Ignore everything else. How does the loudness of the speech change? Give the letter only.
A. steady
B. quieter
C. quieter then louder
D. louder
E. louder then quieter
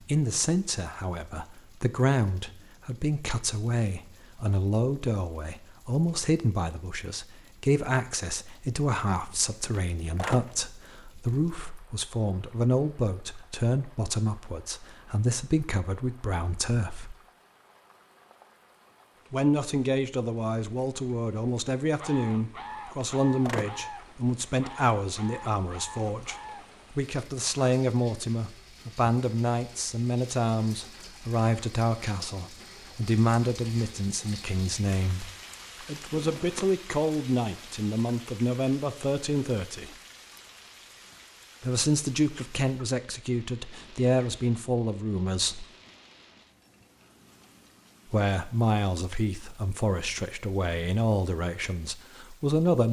A.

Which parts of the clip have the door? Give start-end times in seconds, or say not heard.
9.3-10.7, 22.6-23.9, 36.1-36.8.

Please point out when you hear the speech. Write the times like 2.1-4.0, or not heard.
0.1-17.1, 19.3-40.0, 41.6-45.6, 48.1-52.8.